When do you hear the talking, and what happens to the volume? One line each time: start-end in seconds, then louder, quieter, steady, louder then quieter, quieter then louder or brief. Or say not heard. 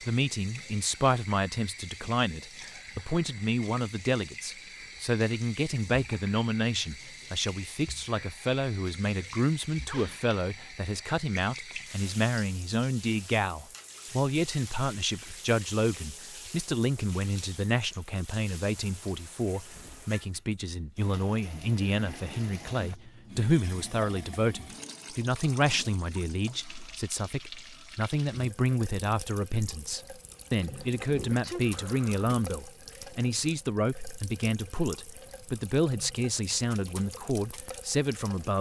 0.1-38.5 steady.